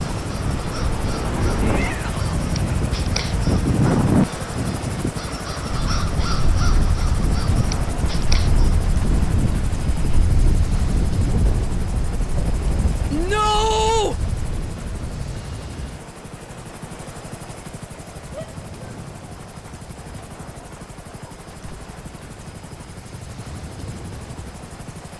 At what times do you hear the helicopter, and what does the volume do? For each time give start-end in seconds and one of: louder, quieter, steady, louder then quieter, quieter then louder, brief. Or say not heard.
0.0-25.1 quieter.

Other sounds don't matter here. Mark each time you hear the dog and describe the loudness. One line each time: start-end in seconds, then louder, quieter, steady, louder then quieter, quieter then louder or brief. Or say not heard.
not heard.